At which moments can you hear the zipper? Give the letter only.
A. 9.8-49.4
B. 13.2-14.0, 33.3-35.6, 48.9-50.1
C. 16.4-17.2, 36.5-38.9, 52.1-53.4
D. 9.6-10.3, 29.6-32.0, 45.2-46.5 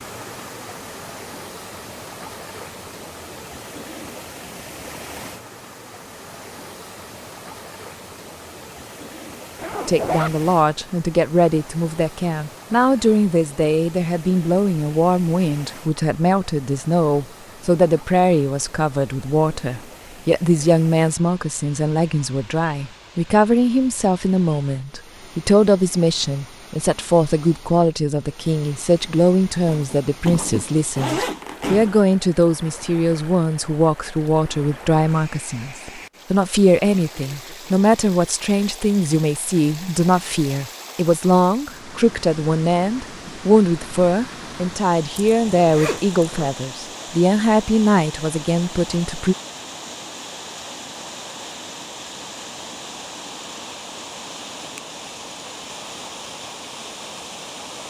D.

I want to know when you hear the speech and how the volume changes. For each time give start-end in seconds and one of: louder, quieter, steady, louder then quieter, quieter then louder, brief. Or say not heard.
9.8-49.4 steady.